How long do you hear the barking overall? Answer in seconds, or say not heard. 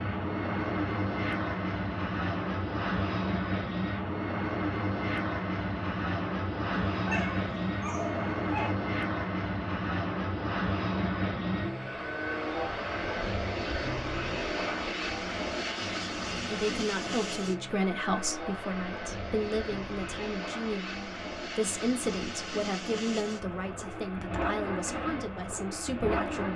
2 s.